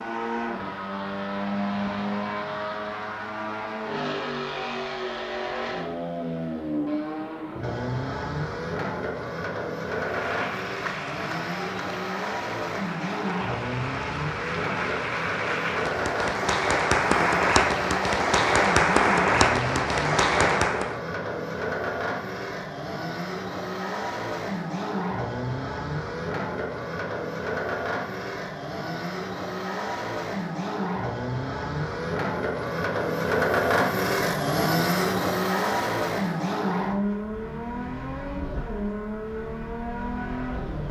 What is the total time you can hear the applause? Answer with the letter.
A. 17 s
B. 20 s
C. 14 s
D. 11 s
D.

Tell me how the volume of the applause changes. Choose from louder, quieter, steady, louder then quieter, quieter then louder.
louder.